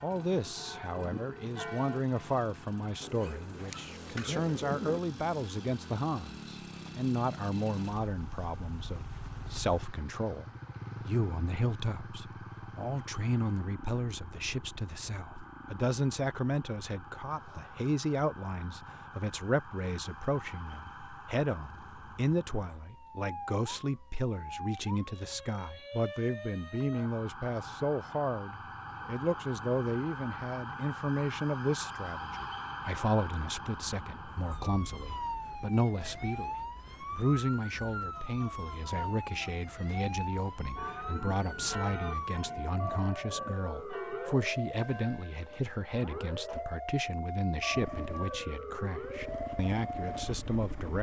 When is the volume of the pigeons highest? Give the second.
5 s.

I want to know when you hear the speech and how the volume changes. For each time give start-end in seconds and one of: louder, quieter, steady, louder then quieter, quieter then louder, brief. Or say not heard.
0.0-50.9 steady.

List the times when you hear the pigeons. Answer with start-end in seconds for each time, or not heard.
3.0-5.0.